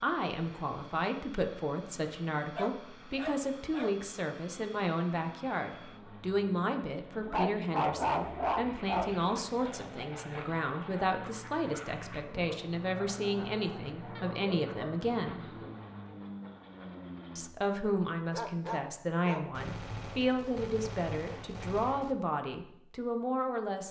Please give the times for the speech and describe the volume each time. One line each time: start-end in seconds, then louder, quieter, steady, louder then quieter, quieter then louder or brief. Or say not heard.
0.0-15.6 steady
17.4-23.8 steady.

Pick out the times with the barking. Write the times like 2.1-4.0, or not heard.
2.5-4.0, 7.2-9.2, 14.2-15.1, 18.3-19.6.